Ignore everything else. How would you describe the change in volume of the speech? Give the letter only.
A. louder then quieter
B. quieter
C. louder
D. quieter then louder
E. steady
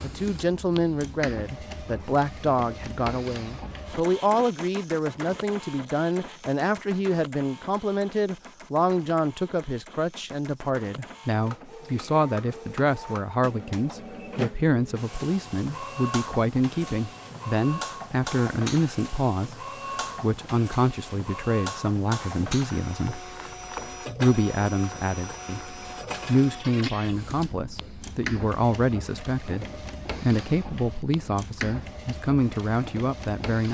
E.